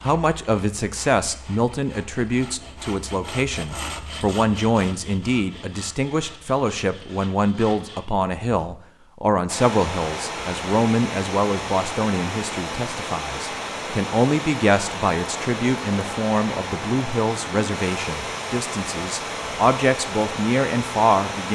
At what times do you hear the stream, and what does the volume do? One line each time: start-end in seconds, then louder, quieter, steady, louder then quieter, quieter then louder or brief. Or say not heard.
9.4-21.4 steady.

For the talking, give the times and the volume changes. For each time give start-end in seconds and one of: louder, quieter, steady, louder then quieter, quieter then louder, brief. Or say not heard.
0.0-21.4 steady.